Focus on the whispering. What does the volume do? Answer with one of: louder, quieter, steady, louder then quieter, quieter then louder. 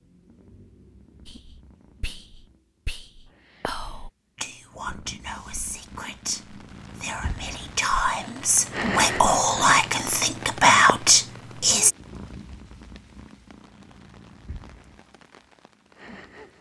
louder.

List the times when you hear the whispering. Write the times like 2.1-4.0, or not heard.
1.2-11.9.